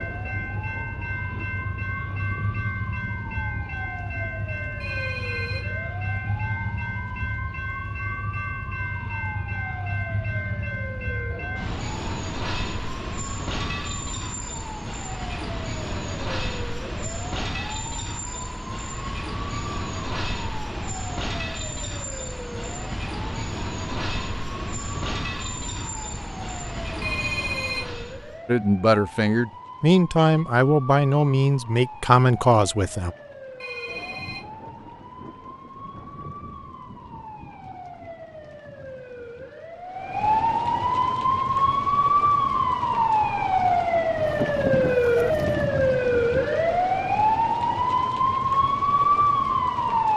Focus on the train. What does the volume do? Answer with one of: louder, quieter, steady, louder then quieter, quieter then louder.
steady.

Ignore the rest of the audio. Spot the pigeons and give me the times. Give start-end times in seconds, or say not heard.
44.1-45.6.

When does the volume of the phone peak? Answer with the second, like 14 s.
27 s.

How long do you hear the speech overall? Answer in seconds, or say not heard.
5 s.